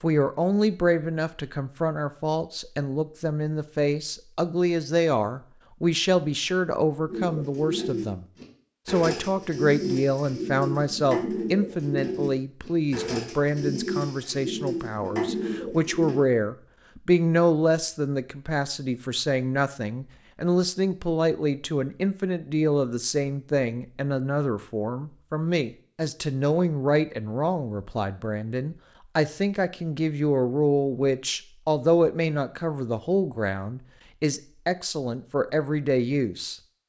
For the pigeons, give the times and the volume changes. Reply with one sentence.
The pigeons can be heard from 7.0 to 16.2 s, at a steady volume.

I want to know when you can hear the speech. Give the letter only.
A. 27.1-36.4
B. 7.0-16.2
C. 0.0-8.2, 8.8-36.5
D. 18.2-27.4
C.